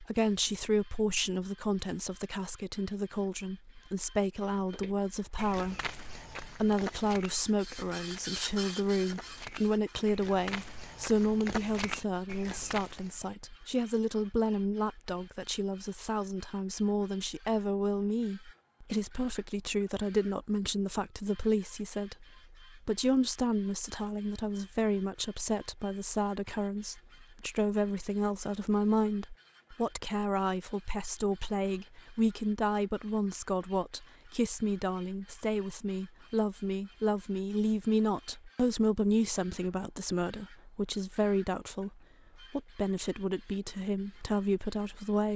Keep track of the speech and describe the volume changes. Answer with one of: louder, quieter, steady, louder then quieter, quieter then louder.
steady.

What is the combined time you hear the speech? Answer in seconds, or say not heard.
45 s.